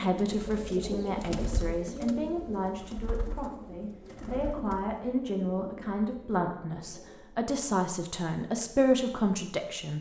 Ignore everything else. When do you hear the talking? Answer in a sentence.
The talking can be heard from 0.0 to 9.9 s.